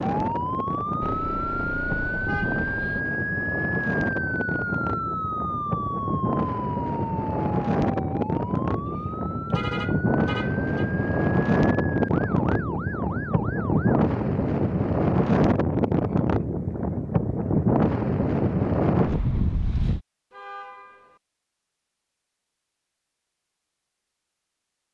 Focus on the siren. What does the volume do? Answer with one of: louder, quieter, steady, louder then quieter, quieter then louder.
quieter.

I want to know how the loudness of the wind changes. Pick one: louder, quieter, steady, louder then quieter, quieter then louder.
louder.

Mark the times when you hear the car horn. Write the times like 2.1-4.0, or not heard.
1.0-3.0, 8.9-10.8, 20.3-21.2.